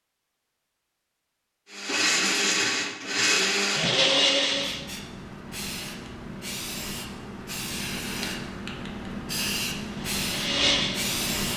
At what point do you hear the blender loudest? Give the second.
4 s.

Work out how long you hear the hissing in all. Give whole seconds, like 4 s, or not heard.
7 s.